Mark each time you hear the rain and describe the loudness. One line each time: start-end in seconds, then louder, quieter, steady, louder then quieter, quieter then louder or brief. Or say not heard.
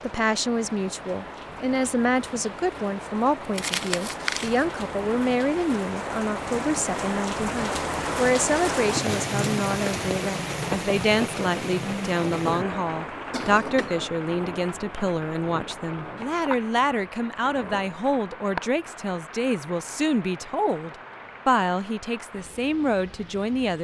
0.0-23.7 louder then quieter.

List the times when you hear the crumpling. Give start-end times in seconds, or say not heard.
3.5-4.7.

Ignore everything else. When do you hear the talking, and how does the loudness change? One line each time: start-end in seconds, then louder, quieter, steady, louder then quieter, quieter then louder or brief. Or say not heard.
0.0-23.7 steady.